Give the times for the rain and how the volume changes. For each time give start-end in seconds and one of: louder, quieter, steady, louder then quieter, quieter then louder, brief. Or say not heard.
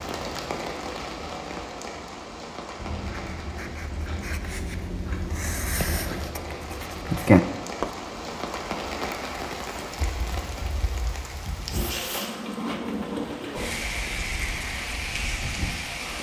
0.0-16.1 quieter then louder.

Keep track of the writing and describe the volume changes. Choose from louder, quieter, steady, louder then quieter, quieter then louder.
louder.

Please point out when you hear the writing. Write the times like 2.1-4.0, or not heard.
2.8-8.0.